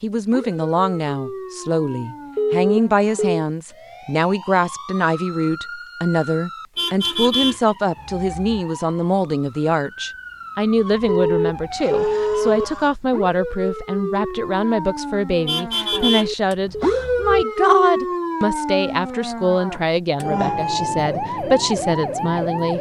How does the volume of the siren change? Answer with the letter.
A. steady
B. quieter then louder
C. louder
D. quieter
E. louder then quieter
C.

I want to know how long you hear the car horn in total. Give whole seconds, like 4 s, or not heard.
4 s.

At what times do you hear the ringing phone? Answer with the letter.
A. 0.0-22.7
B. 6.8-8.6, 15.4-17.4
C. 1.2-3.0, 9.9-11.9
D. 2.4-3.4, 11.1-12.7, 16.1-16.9
D.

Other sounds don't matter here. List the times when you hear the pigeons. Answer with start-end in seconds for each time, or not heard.
not heard.